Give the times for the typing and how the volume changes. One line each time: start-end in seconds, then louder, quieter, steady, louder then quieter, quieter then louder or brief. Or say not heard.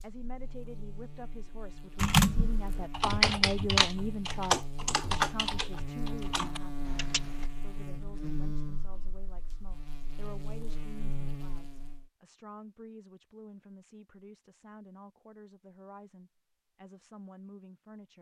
1.9-7.5 quieter.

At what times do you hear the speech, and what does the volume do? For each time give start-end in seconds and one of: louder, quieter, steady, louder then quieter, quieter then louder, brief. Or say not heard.
0.0-18.1 quieter.